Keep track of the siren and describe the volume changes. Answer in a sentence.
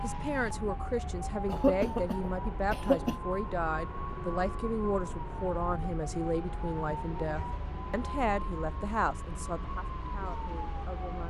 The volume of the siren stays about the same.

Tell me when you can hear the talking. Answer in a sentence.
The talking can be heard from 0.0 to 11.2 s.